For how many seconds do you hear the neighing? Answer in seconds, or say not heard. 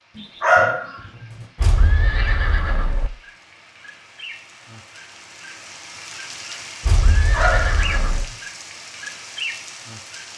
3 s.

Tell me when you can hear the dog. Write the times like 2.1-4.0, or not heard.
0.1-0.9, 7.3-7.8.